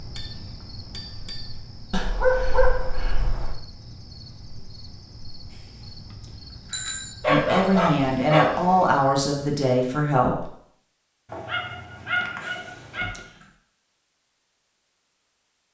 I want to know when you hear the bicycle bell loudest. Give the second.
7 s.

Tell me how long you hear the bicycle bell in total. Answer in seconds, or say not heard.
4 s.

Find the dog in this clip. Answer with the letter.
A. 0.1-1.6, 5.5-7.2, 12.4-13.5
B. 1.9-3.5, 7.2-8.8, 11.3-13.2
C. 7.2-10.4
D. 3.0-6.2
B.